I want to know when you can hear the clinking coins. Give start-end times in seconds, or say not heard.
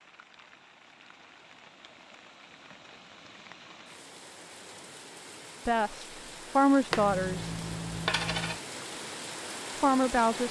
6.9-8.6.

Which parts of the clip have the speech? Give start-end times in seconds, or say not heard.
5.7-7.5, 9.8-10.4.